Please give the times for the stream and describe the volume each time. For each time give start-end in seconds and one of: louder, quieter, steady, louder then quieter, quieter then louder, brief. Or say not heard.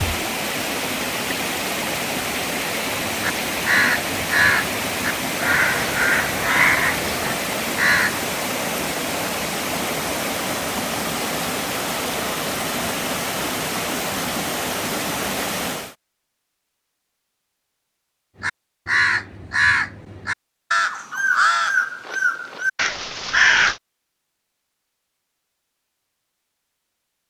0.0-15.9 steady.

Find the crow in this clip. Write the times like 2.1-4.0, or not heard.
3.0-8.2, 18.4-23.8.